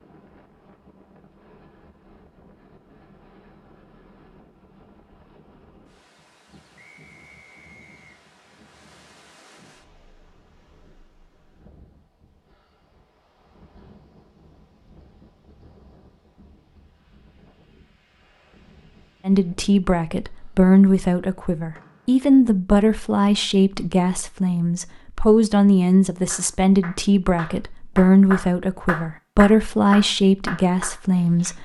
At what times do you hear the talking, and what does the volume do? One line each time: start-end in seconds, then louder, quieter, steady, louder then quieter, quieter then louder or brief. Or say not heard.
19.2-31.6 steady.